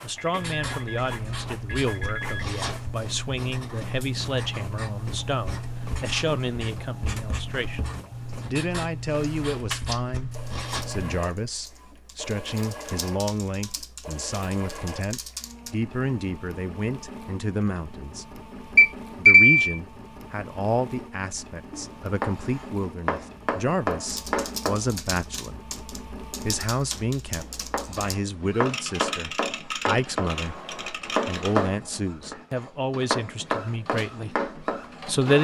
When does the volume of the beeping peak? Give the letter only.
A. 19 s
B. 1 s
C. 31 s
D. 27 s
A.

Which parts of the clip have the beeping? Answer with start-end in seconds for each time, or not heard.
0.1-2.6, 18.8-19.8.